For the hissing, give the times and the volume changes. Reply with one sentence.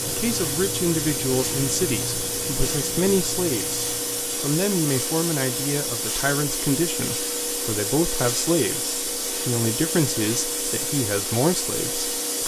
You can hear the hissing from 0.0 to 12.4 s, at a steady volume.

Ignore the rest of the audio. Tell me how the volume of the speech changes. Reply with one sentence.
The loudness of the speech stays about the same.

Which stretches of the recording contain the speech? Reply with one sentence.
You can hear the speech from 0.1 to 12.4 s.